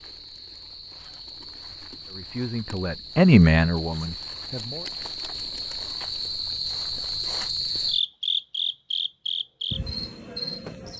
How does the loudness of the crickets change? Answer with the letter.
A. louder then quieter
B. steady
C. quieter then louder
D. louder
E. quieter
D.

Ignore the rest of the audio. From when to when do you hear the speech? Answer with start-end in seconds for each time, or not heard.
2.1-4.8.